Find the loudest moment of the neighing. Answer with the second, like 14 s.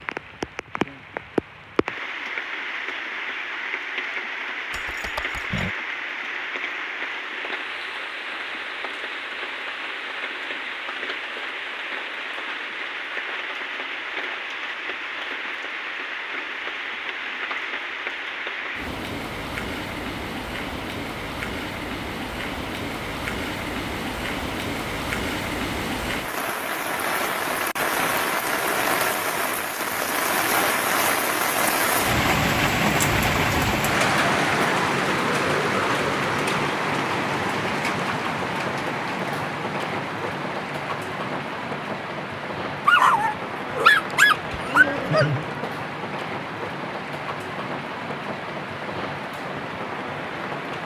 45 s.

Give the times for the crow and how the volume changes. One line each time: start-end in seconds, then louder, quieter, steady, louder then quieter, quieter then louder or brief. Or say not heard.
not heard.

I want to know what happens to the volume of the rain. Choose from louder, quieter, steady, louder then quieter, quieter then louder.
louder then quieter.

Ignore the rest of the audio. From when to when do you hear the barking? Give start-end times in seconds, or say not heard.
42.9-45.2.